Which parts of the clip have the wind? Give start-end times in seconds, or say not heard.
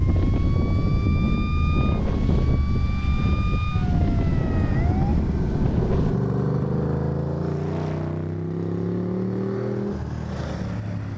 0.0-6.2.